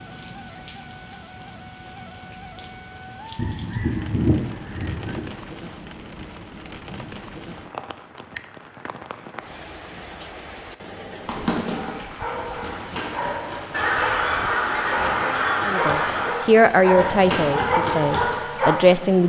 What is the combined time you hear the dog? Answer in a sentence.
The dog can be heard for 7 seconds in total.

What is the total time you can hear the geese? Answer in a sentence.
You can hear the geese for 5 seconds altogether.